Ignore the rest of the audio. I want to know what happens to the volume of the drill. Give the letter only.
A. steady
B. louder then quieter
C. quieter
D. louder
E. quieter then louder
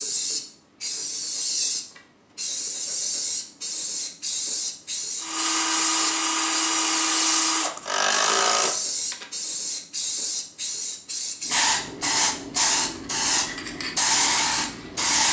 A.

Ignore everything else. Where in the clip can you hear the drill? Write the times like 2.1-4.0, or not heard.
5.2-9.2.